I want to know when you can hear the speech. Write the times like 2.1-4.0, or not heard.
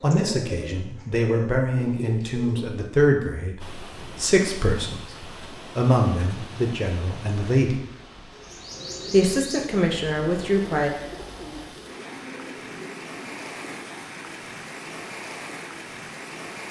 0.0-7.8, 9.1-10.9.